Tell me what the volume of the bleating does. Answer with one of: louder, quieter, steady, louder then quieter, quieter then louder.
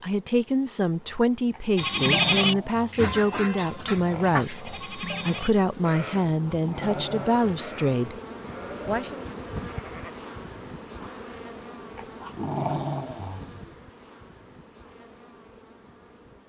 quieter.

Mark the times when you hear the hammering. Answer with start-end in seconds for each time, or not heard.
not heard.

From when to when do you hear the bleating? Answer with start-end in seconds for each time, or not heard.
1.8-10.2.